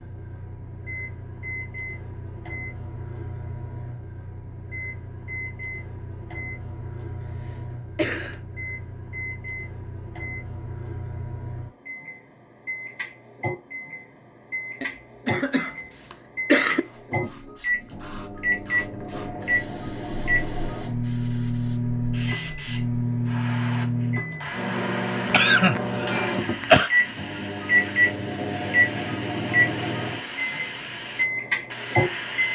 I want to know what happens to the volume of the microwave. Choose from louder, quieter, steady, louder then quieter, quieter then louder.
louder.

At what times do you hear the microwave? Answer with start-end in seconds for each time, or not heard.
0.0-32.5.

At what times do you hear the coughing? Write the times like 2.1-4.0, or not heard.
7.4-8.4, 14.8-16.8, 25.2-26.9.